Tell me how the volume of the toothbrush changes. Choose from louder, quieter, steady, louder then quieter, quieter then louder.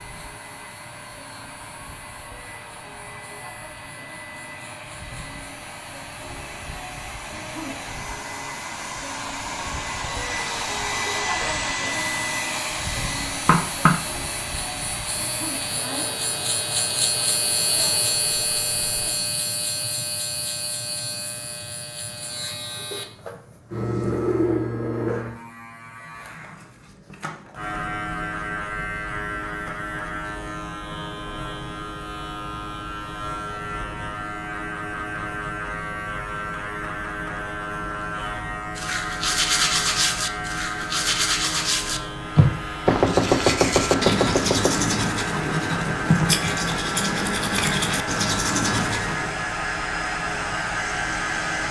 steady.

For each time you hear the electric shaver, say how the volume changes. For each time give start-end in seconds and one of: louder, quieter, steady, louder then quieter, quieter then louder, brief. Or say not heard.
0.0-51.6 louder.